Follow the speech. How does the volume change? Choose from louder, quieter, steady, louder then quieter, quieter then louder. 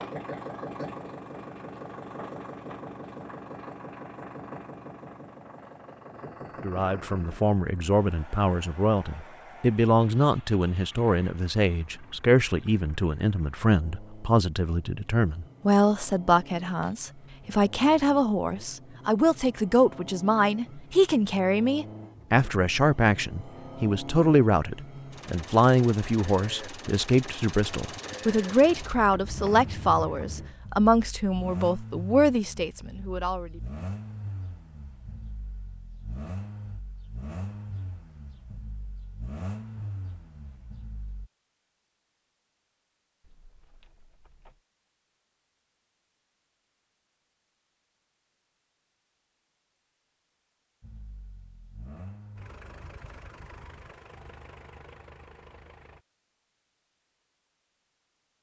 steady.